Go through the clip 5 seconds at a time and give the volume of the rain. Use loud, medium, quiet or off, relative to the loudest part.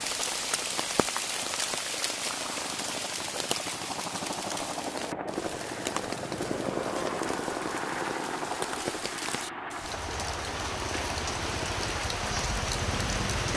loud, medium, loud.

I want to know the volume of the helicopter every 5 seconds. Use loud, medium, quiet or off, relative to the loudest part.
medium, loud, medium.